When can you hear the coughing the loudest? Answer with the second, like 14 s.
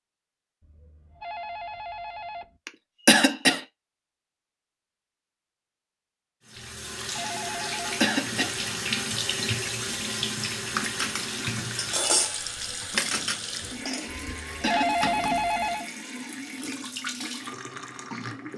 3 s.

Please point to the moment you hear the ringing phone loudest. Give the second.
15 s.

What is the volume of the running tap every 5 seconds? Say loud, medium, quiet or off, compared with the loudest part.
off, loud, loud, medium.